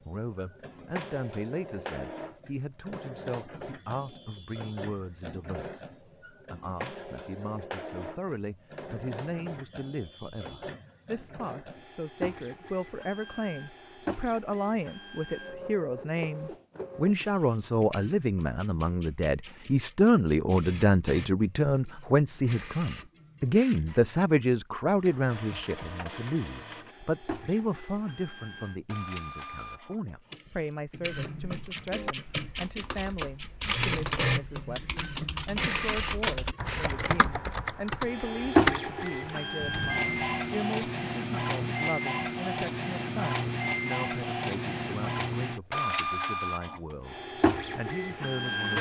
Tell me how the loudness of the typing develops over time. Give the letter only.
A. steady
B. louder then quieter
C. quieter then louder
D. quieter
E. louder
E.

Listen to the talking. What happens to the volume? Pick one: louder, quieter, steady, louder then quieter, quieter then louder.
louder then quieter.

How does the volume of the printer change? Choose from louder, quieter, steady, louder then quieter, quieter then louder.
louder.